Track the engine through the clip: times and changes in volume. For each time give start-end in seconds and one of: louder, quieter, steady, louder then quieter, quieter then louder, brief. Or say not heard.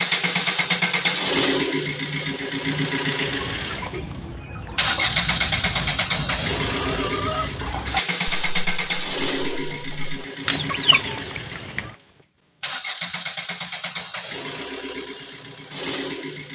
0.0-16.5 quieter.